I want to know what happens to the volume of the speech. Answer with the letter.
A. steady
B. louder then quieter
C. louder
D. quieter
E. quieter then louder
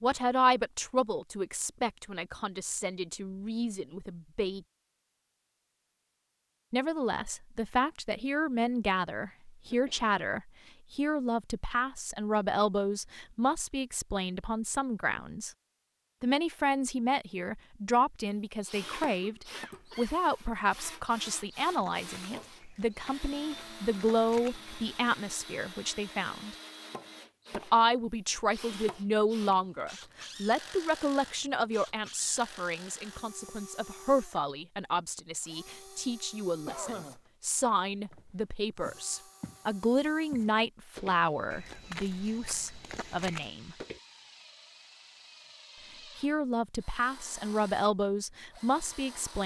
A.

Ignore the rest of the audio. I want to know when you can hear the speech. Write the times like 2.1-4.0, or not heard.
0.0-4.6, 6.7-15.5, 16.2-26.6, 27.6-43.8, 46.1-49.4.